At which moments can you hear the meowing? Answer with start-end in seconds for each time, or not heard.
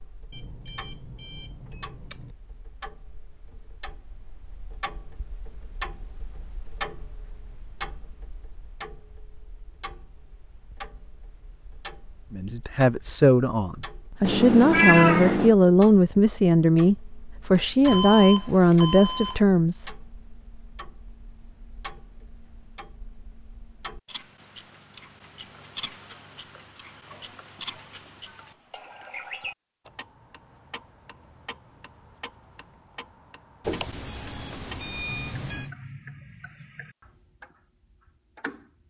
14.2-15.6.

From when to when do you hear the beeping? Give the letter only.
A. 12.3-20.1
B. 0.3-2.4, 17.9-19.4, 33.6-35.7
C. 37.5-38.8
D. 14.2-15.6
B.